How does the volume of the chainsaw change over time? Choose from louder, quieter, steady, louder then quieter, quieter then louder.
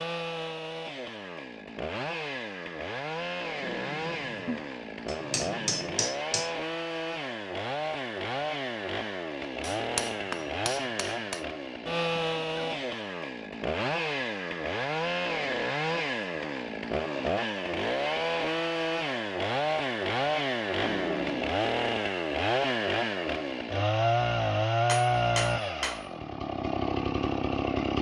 louder.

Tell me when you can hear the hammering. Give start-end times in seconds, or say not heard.
5.0-6.5, 9.6-11.4, 24.9-26.1.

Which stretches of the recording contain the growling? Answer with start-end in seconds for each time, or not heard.
3.6-6.0, 11.9-12.8, 20.8-21.6.